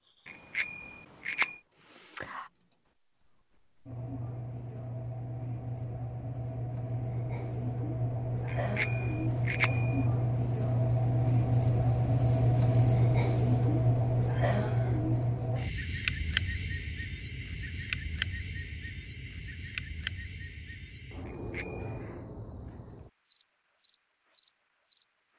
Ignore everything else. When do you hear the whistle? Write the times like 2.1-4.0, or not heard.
not heard.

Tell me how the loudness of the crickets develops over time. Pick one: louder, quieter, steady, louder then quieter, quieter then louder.
louder then quieter.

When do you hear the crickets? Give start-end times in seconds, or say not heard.
0.1-25.3.